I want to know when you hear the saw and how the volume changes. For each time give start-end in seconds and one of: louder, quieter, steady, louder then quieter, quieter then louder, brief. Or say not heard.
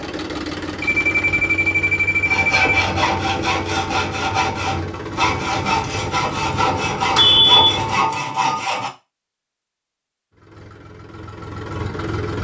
2.2-8.9 steady.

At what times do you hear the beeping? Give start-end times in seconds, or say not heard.
0.8-2.6, 7.2-7.8.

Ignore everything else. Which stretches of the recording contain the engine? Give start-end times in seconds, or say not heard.
0.0-8.2, 10.3-12.3.